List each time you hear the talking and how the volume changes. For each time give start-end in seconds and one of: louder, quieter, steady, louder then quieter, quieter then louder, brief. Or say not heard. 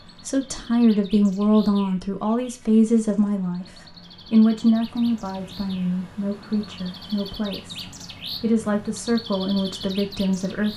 0.2-10.7 quieter then louder.